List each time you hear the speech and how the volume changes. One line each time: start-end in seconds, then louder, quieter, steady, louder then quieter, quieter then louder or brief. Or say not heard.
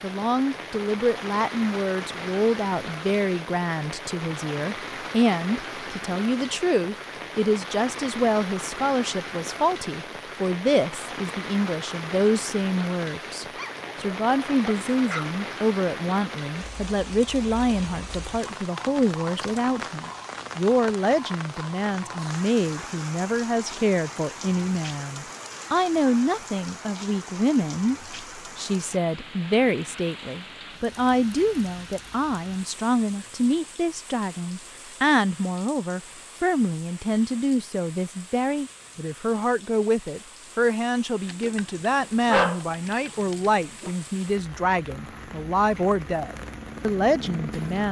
0.0-47.8 steady.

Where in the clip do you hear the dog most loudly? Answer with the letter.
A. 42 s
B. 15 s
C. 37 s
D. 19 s
A.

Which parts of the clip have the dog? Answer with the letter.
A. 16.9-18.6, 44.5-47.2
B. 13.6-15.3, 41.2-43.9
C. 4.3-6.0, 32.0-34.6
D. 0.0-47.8
B.